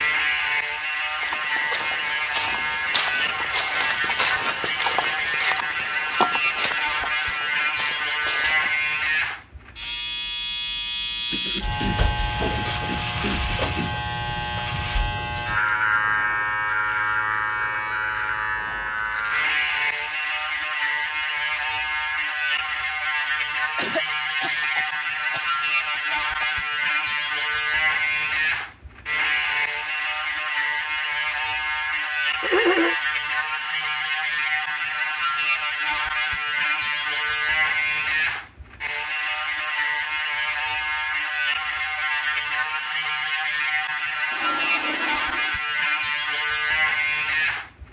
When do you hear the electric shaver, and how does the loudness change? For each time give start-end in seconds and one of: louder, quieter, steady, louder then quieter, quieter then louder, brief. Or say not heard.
0.0-47.8 steady.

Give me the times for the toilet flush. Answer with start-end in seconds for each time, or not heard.
44.3-45.5.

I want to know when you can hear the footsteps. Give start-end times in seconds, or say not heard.
1.1-8.9.